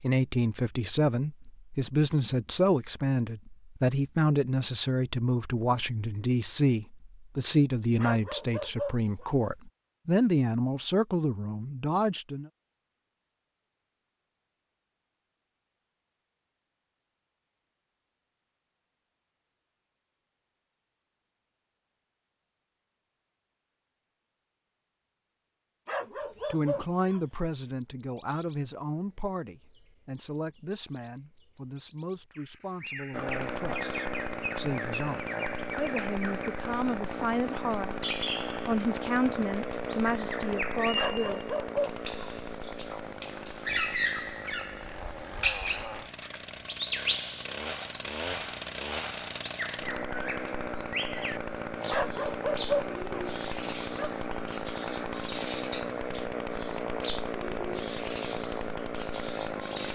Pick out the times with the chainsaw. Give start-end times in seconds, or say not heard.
33.1-59.9.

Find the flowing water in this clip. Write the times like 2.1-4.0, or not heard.
not heard.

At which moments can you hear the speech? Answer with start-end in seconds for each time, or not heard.
0.0-12.5, 26.5-41.4.